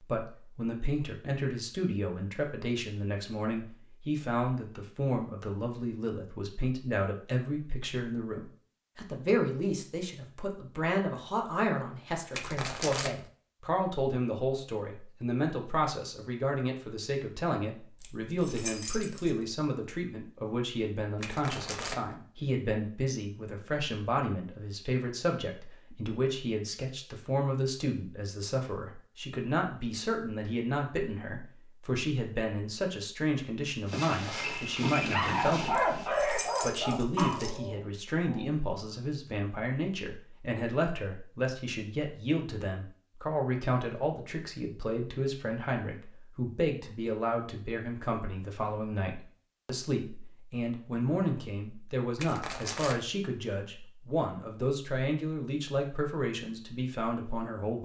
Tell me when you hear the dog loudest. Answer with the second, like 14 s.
36 s.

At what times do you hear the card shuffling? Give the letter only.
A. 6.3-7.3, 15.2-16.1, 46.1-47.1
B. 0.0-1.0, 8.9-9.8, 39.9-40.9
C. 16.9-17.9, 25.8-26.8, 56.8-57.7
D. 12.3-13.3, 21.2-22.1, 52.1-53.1
D.